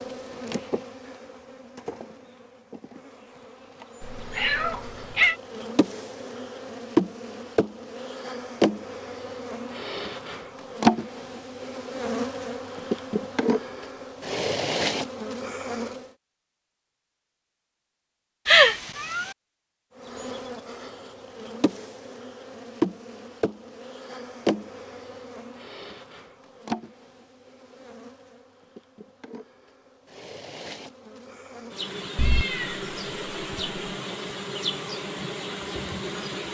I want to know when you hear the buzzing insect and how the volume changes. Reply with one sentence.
You can hear the buzzing insect from 0.0 to 16.1 s, getting louder; and from 19.9 to 36.5 s, getting quieter then louder.